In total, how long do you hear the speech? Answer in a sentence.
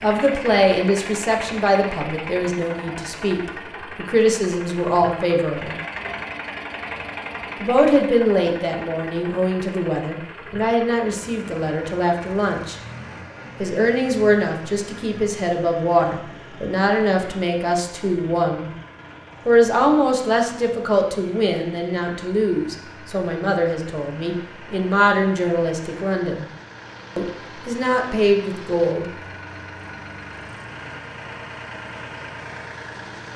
The speech can be heard for 25 seconds in total.